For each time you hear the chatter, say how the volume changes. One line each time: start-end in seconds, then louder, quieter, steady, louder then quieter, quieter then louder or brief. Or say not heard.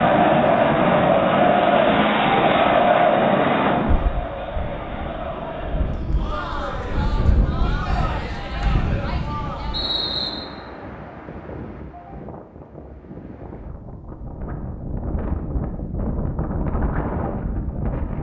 0.0-9.9 quieter.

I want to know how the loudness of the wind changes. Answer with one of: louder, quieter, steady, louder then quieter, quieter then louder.
quieter then louder.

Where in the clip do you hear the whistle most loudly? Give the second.
10 s.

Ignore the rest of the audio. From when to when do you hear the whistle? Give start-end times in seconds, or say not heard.
8.7-10.3.